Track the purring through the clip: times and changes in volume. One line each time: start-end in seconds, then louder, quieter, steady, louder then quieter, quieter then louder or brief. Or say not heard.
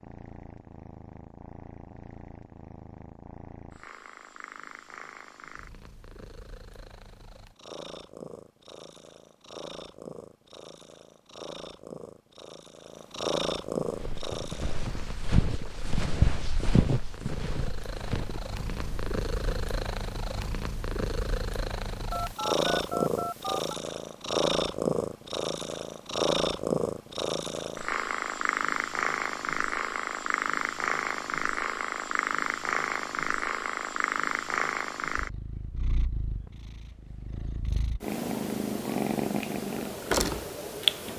0.0-41.1 louder.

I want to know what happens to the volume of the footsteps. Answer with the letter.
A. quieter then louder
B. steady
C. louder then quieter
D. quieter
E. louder
C.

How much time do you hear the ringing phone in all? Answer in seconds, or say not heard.
2 s.